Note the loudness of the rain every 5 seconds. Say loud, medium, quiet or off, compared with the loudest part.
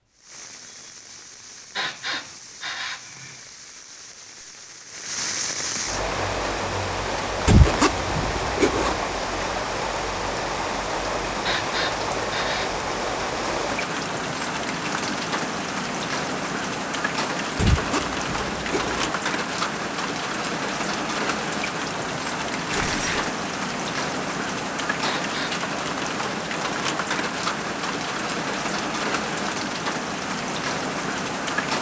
quiet, loud, loud, loud, loud, loud, loud.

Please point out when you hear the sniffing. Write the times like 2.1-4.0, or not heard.
1.8-3.4, 11.4-12.8, 25.0-25.6.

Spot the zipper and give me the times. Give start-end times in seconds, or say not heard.
7.5-9.0, 17.6-19.1, 22.7-23.4.